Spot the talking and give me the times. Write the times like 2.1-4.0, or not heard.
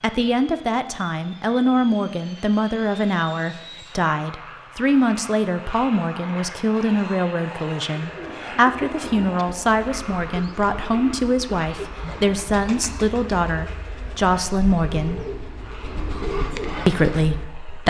0.0-15.2, 16.9-17.8.